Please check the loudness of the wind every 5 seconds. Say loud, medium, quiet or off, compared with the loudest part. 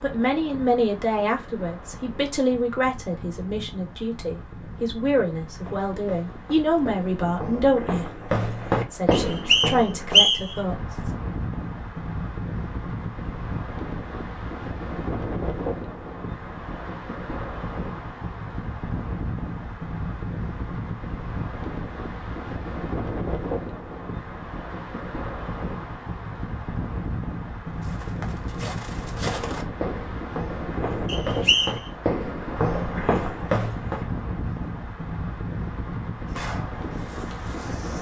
medium, medium, loud, loud, loud, loud, loud, loud.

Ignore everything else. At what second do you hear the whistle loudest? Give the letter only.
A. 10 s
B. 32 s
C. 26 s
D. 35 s
A.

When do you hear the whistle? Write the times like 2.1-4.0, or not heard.
9.1-10.6, 31.1-31.8.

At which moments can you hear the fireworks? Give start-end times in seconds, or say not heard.
36.2-37.9.